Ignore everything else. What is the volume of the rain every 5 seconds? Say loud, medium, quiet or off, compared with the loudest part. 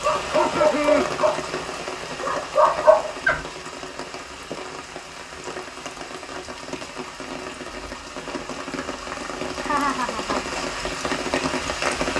medium, medium, loud.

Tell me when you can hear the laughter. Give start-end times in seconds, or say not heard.
0.1-1.1, 9.6-10.5.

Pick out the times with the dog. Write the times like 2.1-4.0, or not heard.
0.0-3.4.